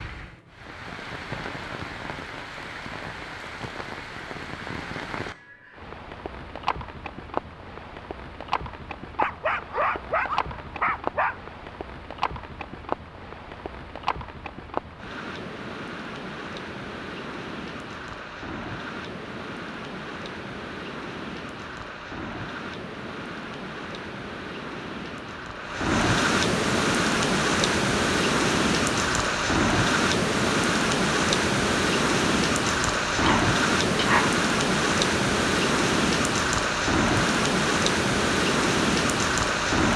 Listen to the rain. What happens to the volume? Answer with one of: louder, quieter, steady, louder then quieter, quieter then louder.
louder.